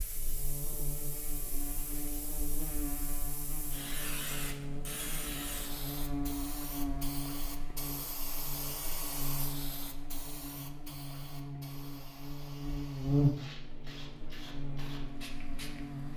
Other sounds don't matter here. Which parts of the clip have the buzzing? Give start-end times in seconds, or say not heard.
0.0-16.1.